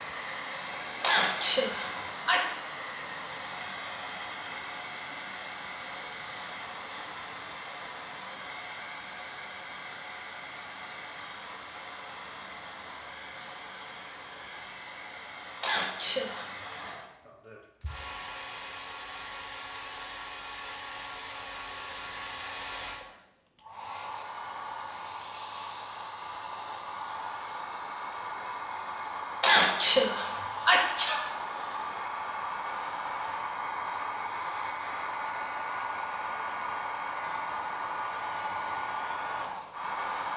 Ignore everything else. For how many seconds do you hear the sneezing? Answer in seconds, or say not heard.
4 s.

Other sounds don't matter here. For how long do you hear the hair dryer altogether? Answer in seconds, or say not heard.
40 s.